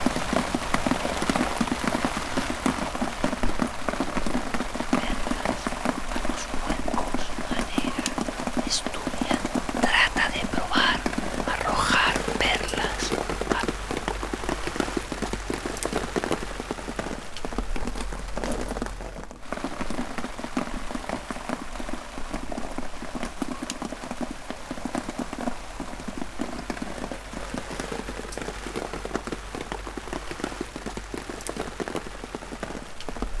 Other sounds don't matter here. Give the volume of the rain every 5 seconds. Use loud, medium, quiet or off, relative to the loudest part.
loud, loud, loud, medium, medium, medium, medium.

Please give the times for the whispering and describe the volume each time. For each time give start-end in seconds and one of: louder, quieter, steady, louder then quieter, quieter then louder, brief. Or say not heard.
5.0-13.7 louder.